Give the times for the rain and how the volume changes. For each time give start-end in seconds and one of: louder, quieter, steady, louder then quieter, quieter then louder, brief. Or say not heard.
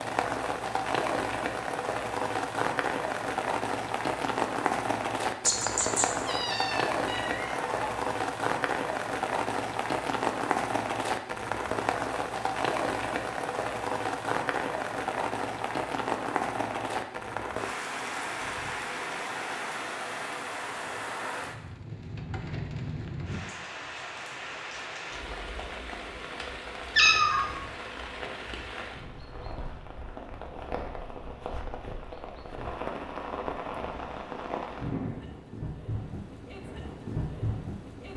0.0-38.1 quieter.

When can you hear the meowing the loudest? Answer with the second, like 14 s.
27 s.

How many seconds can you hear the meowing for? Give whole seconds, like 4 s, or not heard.
3 s.